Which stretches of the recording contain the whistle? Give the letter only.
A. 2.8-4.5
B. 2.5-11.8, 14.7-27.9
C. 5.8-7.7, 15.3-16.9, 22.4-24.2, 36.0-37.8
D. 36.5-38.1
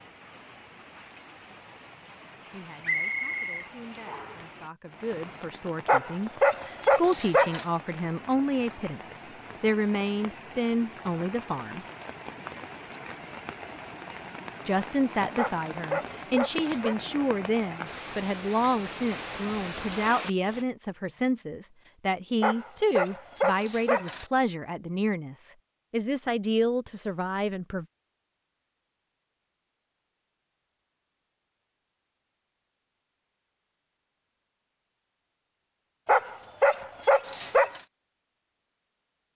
A.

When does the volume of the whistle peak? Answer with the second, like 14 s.
3 s.